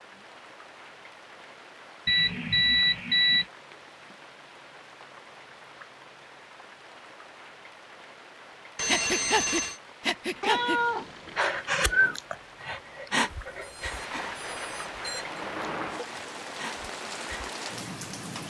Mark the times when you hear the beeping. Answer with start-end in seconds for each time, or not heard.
2.0-3.5, 8.8-9.8, 13.2-15.4.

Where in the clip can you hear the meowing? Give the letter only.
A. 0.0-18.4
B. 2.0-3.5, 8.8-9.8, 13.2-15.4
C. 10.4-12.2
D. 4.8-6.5
C.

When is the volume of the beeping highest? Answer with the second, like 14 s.
3 s.